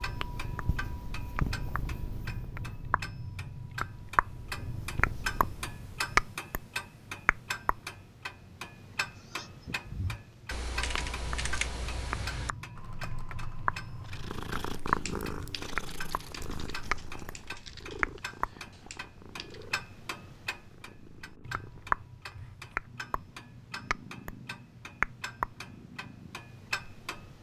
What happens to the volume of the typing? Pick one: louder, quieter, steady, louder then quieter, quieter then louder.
quieter.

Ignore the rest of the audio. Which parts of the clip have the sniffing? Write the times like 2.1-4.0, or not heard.
9.2-9.9.